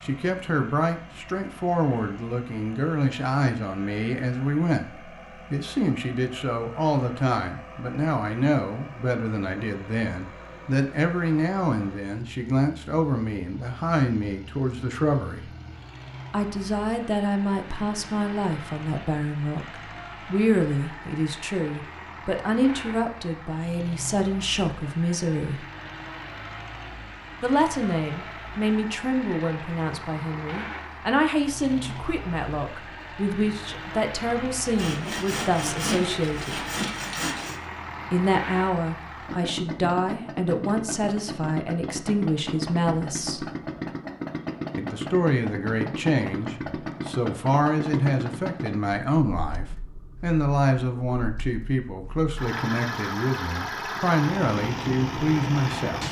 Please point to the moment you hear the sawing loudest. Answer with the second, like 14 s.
36 s.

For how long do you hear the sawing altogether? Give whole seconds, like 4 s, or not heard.
3 s.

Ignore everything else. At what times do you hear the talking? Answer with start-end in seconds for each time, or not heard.
0.0-15.5, 16.3-25.6, 27.4-36.6, 38.1-43.5, 44.8-56.0.